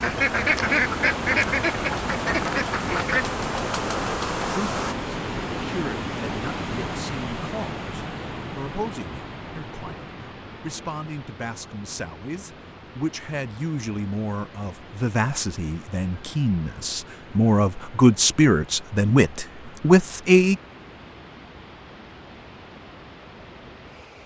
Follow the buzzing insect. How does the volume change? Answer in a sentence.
The loudness of the buzzing insect goes up.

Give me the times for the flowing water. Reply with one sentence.
You can hear the flowing water from 0.0 to 24.2 s.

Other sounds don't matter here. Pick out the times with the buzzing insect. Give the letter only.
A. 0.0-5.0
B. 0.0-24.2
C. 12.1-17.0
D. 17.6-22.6
A.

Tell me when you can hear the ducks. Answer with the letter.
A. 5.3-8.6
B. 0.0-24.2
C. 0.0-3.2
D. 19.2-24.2
C.